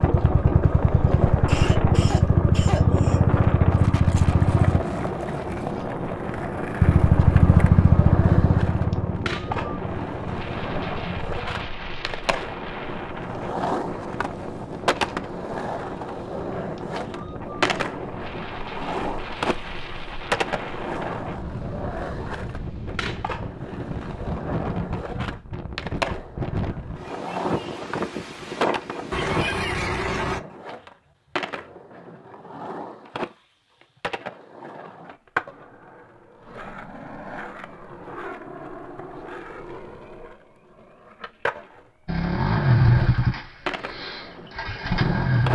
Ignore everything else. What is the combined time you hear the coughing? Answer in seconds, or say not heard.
4 s.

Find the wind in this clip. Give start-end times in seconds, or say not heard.
0.0-29.6.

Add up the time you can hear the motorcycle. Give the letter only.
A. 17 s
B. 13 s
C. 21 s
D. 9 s
B.